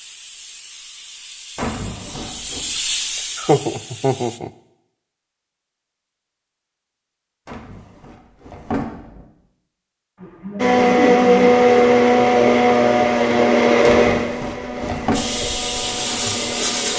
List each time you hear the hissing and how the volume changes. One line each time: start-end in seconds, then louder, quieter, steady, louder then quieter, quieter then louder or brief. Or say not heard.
0.0-4.4 louder then quieter
15.1-16.9 brief.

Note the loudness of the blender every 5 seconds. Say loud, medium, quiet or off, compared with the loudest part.
off, off, loud, quiet.